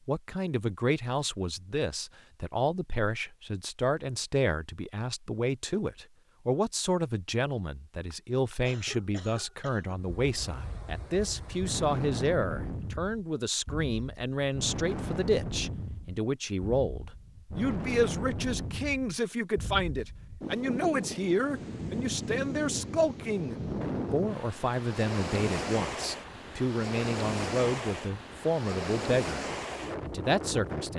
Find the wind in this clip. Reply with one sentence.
You can hear the wind from 9.9 to 30.9 s.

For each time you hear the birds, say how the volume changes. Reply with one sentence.
The birds can't be heard in this clip.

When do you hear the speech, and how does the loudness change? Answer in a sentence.
You can hear the speech from 0.1 to 30.9 s, at a steady volume.